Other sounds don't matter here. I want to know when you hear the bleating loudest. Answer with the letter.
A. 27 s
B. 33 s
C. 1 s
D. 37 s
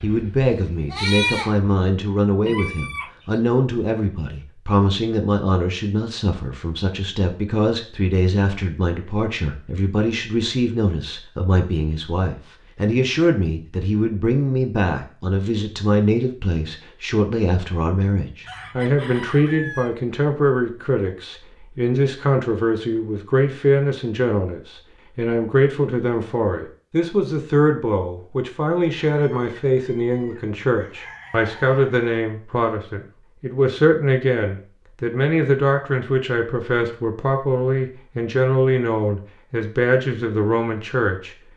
C.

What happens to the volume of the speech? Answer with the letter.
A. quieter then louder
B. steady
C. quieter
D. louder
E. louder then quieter
B.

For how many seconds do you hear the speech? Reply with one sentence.
The speech can be heard for 41 seconds in total.